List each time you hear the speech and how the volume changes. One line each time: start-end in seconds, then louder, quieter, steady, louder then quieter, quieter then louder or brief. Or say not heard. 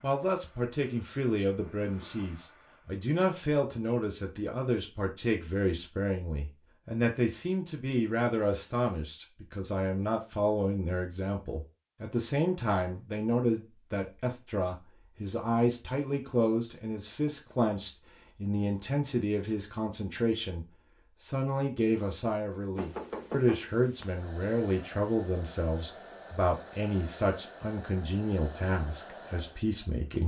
0.0-30.2 steady.